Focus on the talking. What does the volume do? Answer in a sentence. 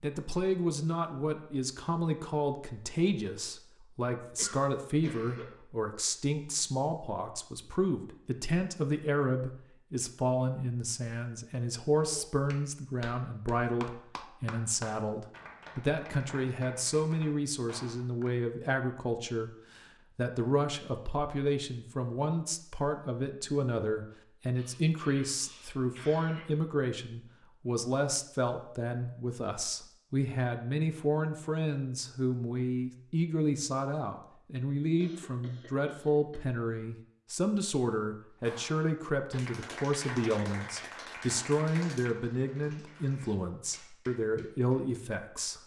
The loudness of the talking stays about the same.